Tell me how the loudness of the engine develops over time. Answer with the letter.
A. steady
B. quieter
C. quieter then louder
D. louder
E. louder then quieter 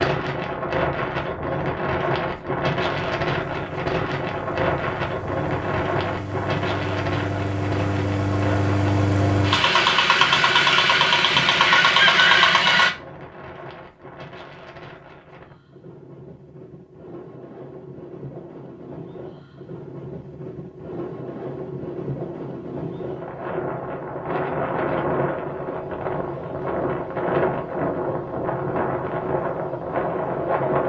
D.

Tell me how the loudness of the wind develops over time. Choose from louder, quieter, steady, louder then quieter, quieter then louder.
quieter then louder.